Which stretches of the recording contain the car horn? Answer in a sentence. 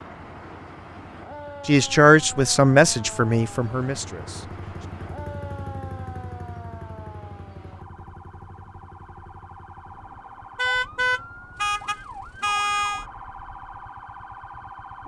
The car horn can be heard from 10.6 to 13.1 s.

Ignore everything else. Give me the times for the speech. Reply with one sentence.
The speech can be heard from 1.6 to 4.5 s.